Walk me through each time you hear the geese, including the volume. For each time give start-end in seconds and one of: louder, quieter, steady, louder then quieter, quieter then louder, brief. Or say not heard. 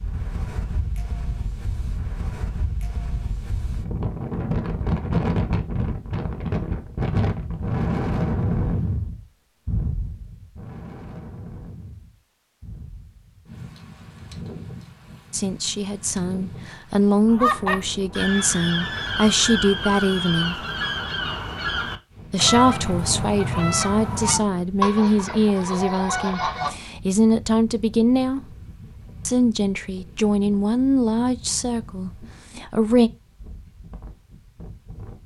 17.2-26.8 steady.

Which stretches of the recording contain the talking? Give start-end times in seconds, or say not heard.
15.3-20.6, 22.3-28.5, 29.2-33.1.